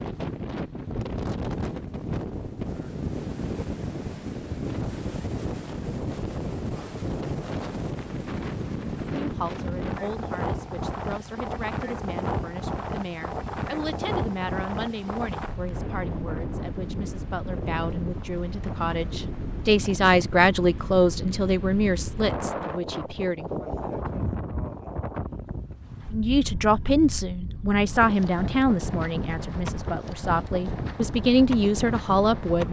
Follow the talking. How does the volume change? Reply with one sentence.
The volume of the talking goes up.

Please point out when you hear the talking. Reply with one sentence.
The talking can be heard from 9.2 to 23.6 s and from 26.1 to 32.6 s.